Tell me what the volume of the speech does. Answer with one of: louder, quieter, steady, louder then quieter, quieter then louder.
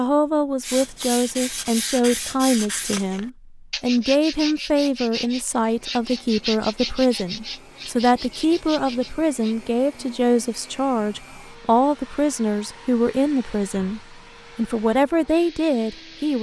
steady.